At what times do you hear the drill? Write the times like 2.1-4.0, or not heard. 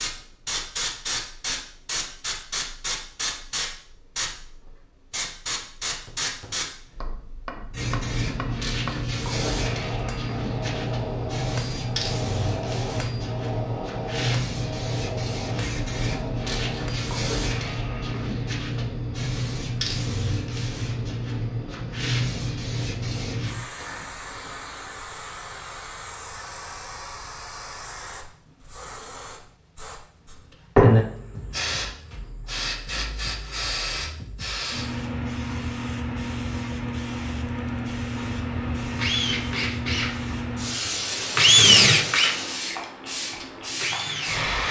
38.2-44.6.